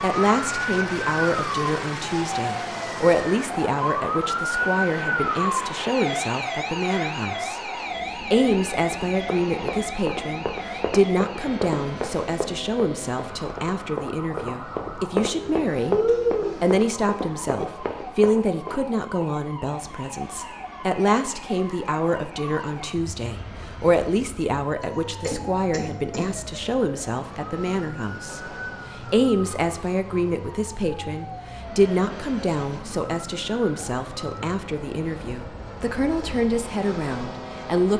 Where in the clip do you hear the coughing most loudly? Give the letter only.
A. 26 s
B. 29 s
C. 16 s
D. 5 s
C.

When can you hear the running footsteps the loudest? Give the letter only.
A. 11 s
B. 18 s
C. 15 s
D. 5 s
C.